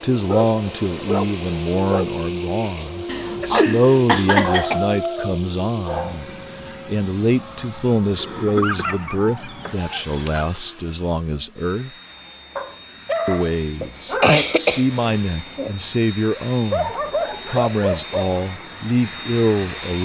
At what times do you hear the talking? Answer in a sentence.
You can hear the talking from 0.0 to 11.9 s and from 13.2 to 19.9 s.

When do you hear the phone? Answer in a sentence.
The phone can't be heard in this clip.